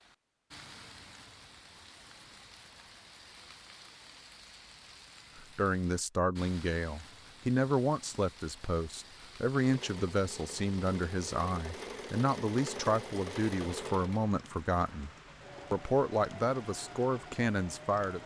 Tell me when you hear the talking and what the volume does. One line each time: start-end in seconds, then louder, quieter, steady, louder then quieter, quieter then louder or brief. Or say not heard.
5.3-15.1 steady
15.7-18.2 brief.